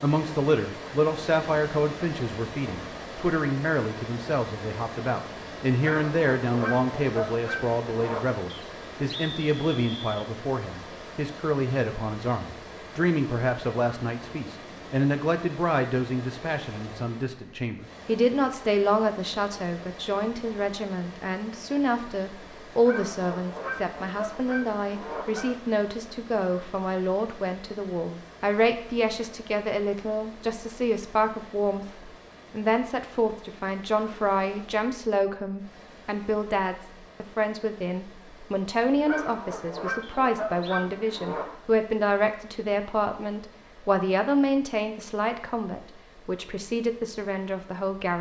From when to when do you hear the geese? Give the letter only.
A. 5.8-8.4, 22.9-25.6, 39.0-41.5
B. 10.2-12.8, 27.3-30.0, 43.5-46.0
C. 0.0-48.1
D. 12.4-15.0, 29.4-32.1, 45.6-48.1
A.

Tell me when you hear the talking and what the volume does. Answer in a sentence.
You can hear the talking from 0.0 to 48.1 s, at a steady volume.